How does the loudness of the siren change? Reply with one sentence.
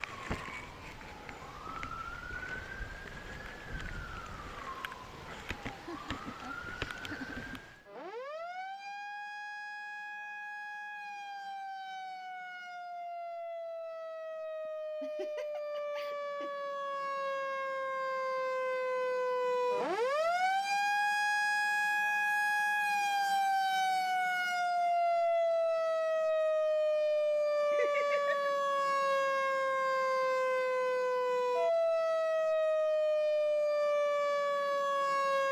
The volume of the siren goes up.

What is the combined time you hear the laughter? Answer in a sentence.
The laughter can be heard for 4 seconds in total.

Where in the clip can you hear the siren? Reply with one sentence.
The siren can be heard from 0.0 to 35.4 s.